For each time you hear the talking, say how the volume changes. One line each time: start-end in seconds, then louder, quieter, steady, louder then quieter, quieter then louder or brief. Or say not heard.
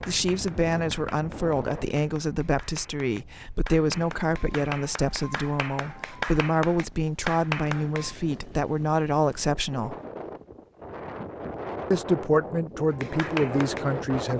0.1-9.9 steady
11.9-14.3 brief.